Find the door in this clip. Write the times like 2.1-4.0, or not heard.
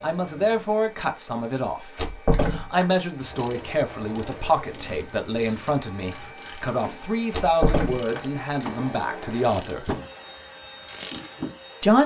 1.9-2.9, 7.3-8.2.